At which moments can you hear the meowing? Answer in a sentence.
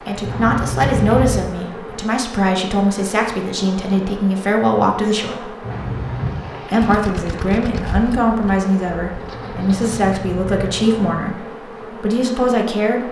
You can hear the meowing from 0.2 to 1.4 s, from 5.6 to 6.4 s and from 9.3 to 11.0 s.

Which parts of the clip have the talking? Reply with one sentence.
You can hear the talking from 0.1 to 5.5 s and from 6.7 to 13.0 s.